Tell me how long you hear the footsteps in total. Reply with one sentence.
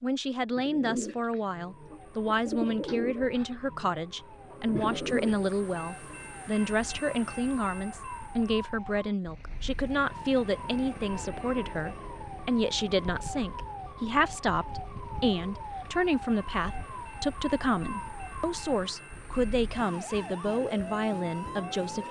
You can't hear the footsteps here.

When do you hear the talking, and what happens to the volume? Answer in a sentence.
The talking can be heard from 0.0 to 22.0 s, at a steady volume.